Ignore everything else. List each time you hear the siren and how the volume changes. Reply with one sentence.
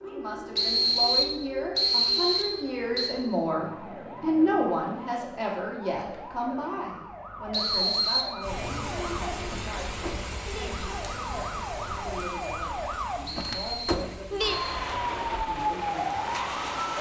The siren can be heard from 0.0 to 16.9 s, getting louder.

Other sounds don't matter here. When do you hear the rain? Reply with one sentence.
You can hear the rain from 8.4 to 16.9 s.